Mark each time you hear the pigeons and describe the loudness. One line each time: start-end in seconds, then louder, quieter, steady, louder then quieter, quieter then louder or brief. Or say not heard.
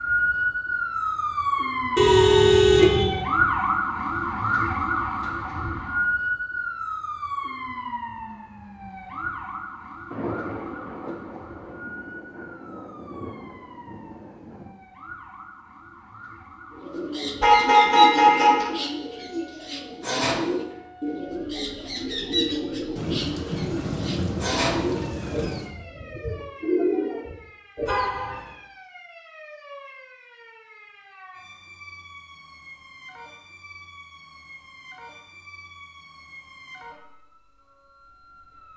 16.7-28.2 steady.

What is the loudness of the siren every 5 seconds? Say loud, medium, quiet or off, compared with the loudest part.
loud, medium, quiet, quiet, quiet, quiet, quiet, quiet.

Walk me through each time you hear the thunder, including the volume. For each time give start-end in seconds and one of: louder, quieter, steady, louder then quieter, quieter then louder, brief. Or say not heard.
10.1-14.8 quieter
22.9-25.8 brief.